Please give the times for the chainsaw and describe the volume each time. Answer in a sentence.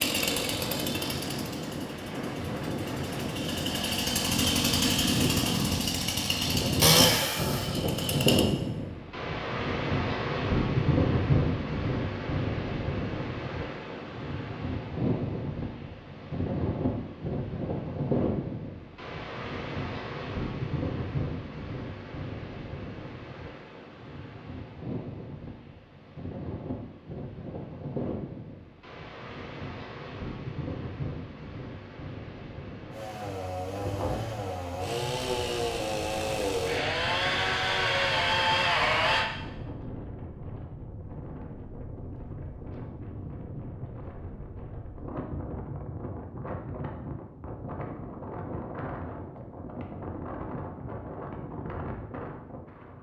The chainsaw can be heard from 0.0 to 8.4 s, getting quieter then louder; and from 32.9 to 39.2 s, getting louder.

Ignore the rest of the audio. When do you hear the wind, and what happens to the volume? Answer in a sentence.
You can hear the wind from 0.1 to 52.9 s, getting quieter.